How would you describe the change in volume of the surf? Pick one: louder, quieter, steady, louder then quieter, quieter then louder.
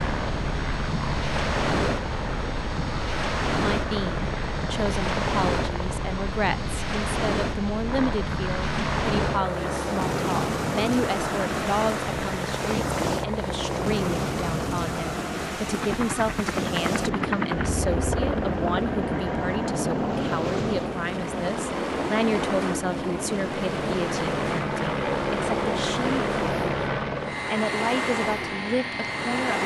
steady.